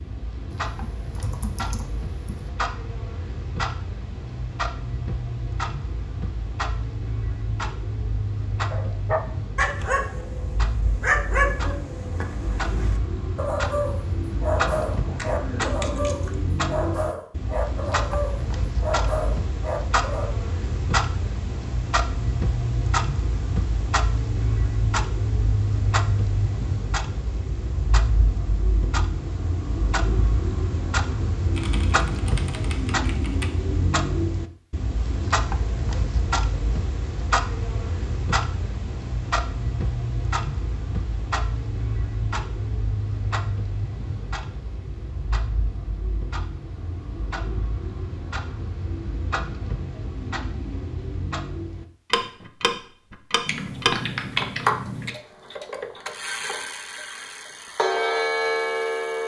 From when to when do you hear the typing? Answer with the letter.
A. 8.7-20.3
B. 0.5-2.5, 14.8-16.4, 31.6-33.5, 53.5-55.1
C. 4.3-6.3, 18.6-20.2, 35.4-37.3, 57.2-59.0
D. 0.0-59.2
B.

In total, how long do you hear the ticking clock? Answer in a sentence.
You can hear the ticking clock for 59 seconds altogether.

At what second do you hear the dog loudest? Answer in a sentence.
The volume of the dog peaks at 11 seconds.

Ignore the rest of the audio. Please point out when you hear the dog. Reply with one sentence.
The dog can be heard from 8.7 to 20.3 s.